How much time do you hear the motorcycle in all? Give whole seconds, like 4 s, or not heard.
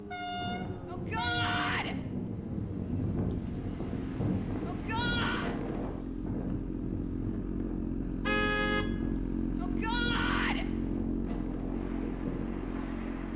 13 s.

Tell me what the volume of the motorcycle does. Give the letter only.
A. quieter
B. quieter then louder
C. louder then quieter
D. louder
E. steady
D.